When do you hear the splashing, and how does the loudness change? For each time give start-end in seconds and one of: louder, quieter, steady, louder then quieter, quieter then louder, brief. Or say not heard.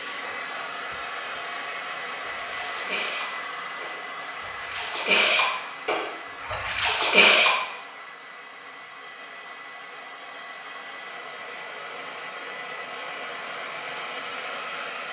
2.4-7.5 quieter then louder.